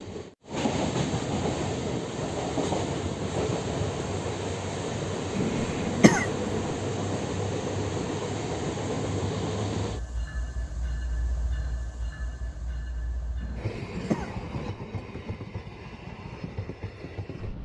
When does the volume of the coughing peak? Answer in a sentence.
The volume of the coughing peaks at 6 seconds.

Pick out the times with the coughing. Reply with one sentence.
The coughing can be heard from 5.3 to 6.7 s and from 13.4 to 15.3 s.